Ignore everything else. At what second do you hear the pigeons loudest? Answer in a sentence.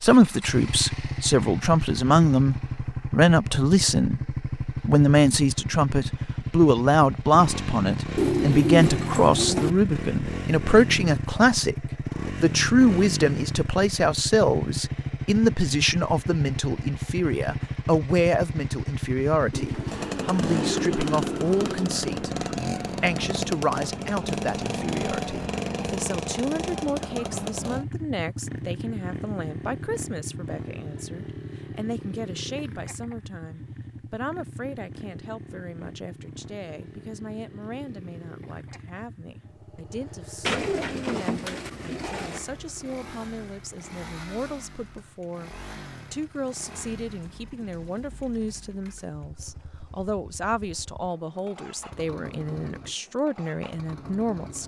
The volume of the pigeons peaks at 9 seconds.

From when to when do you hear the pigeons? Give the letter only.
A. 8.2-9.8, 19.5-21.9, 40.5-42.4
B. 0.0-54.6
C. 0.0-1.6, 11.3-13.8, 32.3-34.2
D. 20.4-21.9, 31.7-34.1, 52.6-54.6
A.